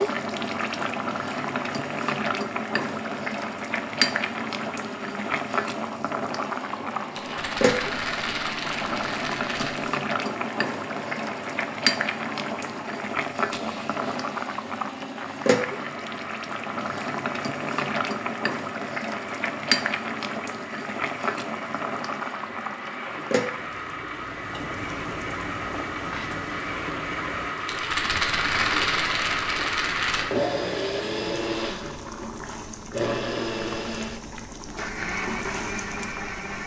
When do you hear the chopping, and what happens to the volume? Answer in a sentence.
The chopping can't be heard in this clip.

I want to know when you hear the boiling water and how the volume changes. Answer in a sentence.
The boiling water can be heard from 0.0 to 36.6 s, getting quieter.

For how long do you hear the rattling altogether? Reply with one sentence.
You can hear the rattling for 6 seconds altogether.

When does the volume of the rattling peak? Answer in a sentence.
The volume of the rattling peaks at 29 seconds.